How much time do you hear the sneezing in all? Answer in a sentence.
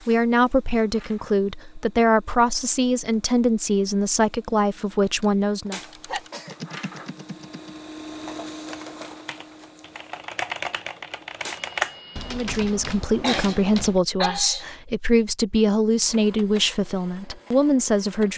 You can hear the sneezing for 2 seconds altogether.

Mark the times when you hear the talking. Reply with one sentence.
The talking can be heard from 0.1 to 5.8 s and from 12.3 to 18.3 s.